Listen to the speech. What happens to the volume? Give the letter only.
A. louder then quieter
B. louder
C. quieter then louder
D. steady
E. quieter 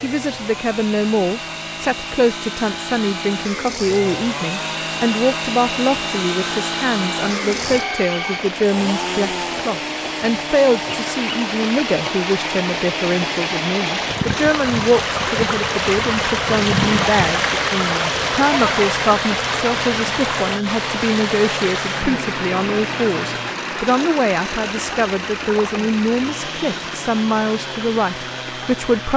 D.